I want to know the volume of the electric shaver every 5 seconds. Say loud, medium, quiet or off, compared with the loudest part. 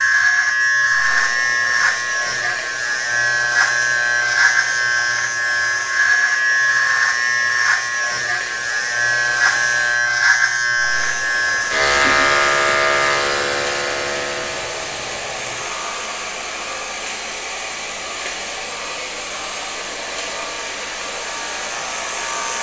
loud, loud, loud, quiet, quiet.